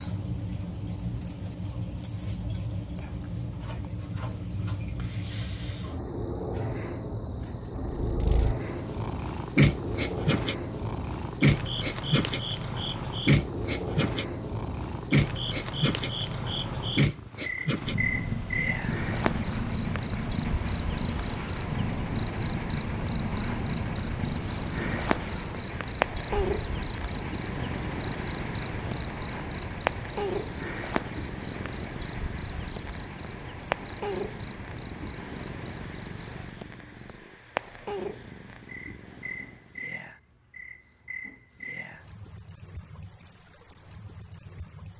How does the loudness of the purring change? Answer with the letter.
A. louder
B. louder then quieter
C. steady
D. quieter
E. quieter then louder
D.